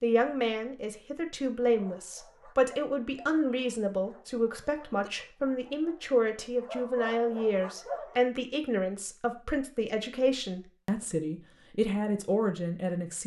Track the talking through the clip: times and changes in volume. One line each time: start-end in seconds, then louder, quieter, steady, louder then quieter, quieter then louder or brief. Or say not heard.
0.0-13.2 steady.